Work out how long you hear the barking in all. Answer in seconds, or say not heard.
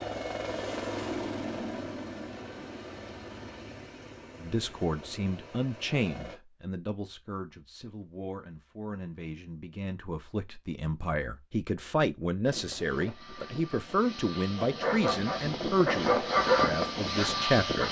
3 s.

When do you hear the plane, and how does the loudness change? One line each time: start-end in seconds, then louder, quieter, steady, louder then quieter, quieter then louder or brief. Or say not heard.
0.0-6.4 quieter
12.4-17.8 louder.